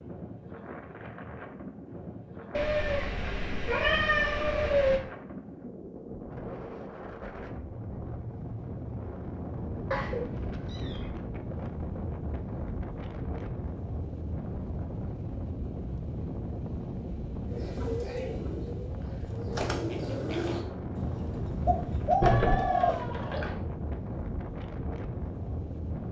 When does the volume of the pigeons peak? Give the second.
22 s.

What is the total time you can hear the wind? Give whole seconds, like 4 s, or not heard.
26 s.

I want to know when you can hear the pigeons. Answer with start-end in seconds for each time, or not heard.
17.5-22.9.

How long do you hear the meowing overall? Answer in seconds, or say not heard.
5 s.